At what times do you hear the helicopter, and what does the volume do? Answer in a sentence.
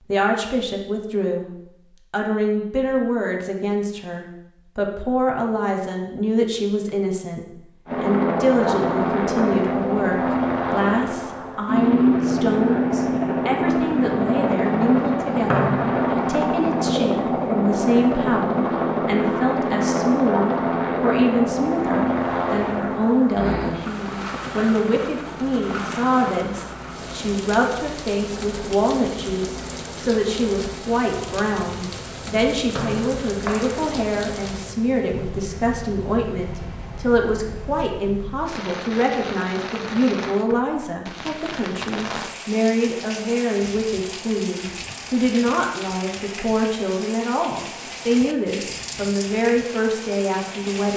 You can hear the helicopter from 7.8 to 37.8 s, getting quieter.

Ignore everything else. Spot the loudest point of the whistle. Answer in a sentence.
The loudest moment of the whistle is at 16 seconds.